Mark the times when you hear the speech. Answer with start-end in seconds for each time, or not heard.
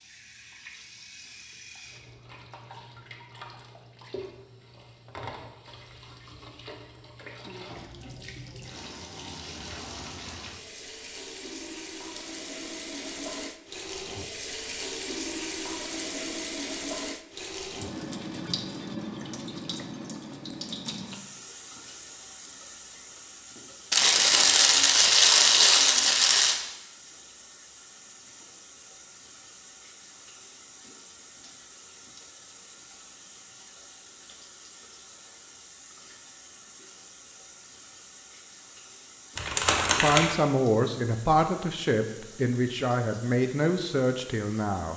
40.0-44.9.